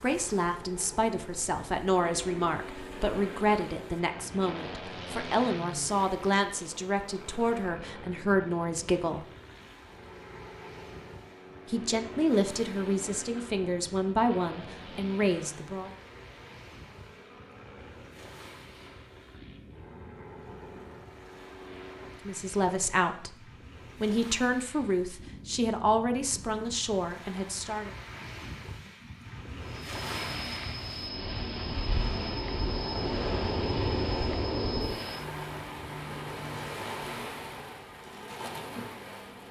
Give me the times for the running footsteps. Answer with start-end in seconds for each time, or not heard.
not heard.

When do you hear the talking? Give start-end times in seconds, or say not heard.
0.0-9.2, 11.7-15.9, 22.2-27.9.